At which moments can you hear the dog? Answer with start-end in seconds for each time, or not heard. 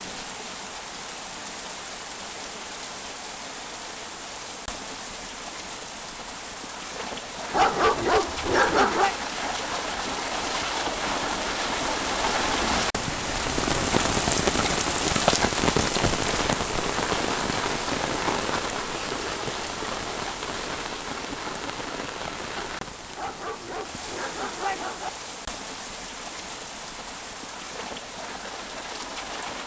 7.5-9.2, 23.1-25.1.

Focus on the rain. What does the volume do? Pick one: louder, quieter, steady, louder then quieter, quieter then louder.
louder then quieter.